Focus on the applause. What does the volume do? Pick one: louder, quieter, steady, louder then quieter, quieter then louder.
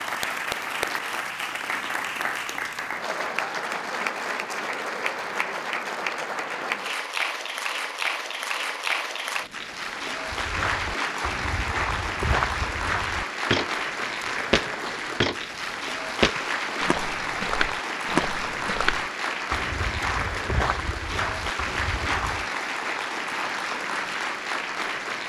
steady.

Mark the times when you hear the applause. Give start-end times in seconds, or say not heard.
0.0-25.2.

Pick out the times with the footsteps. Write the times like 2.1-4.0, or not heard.
10.3-22.4.